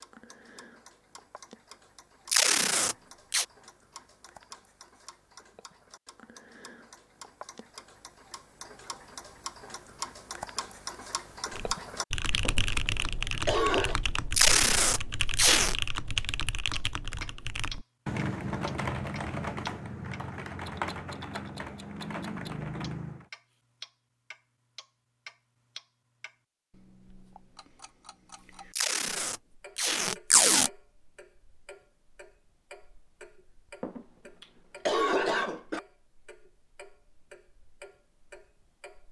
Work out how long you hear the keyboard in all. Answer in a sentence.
You can hear the keyboard for 12 seconds altogether.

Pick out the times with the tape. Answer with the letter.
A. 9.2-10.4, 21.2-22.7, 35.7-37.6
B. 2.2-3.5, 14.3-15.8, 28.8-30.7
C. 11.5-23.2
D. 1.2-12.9
B.